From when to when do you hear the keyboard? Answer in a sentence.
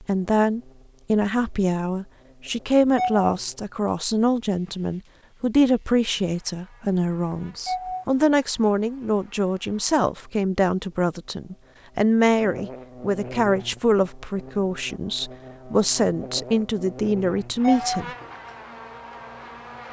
You can't hear the keyboard here.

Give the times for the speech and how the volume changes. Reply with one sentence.
You can hear the speech from 0.0 to 18.1 s, at a steady volume.